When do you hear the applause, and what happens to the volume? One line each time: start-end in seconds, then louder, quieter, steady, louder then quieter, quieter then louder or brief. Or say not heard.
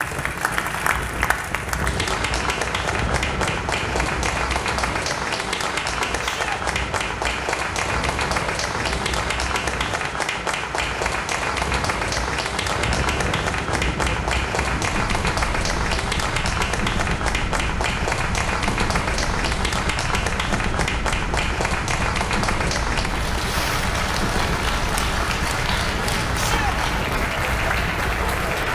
0.0-28.7 steady.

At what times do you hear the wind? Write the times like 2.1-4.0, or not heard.
0.0-28.7.